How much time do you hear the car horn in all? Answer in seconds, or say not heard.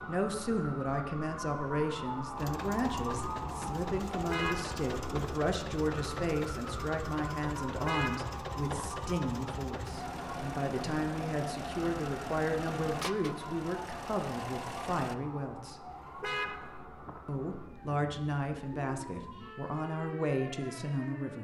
4 s.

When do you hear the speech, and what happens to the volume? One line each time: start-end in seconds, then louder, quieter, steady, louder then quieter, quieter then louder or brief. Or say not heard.
0.0-15.8 steady
17.2-21.4 quieter then louder.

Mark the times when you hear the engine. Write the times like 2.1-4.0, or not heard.
2.4-15.2.